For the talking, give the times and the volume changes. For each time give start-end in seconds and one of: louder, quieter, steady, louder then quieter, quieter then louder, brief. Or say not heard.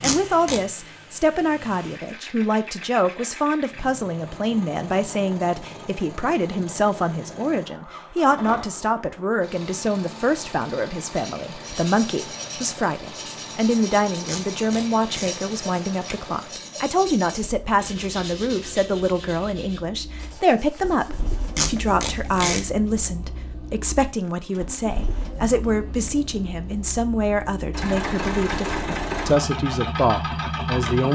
0.0-31.1 steady.